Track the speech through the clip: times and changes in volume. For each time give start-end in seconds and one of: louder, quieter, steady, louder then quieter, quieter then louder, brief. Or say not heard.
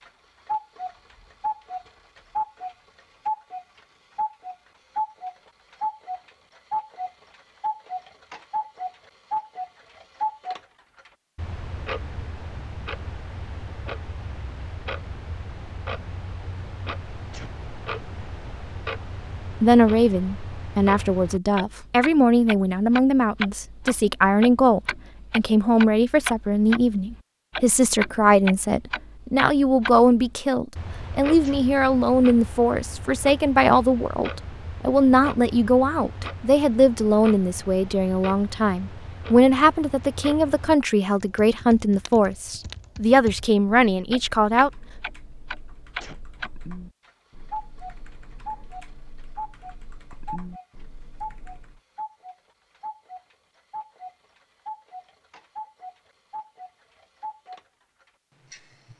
19.4-44.7 steady.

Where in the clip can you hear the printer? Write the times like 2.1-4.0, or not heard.
not heard.